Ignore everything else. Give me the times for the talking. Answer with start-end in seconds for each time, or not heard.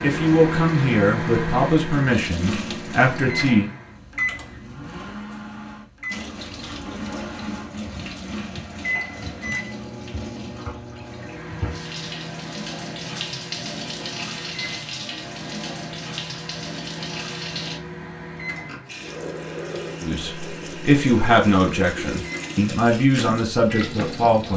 0.0-3.7, 20.0-24.5.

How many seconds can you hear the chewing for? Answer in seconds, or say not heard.
not heard.